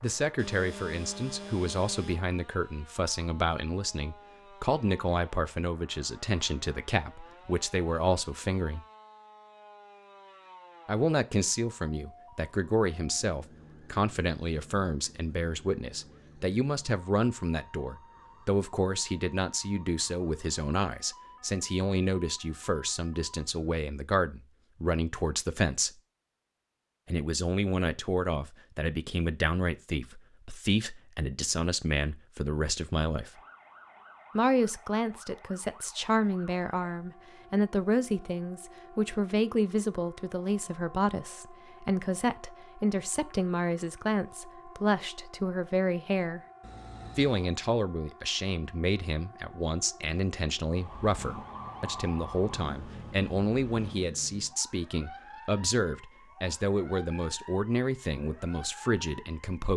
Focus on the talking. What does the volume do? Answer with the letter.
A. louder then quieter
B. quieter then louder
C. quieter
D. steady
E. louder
D.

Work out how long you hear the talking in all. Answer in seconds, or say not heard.
55 s.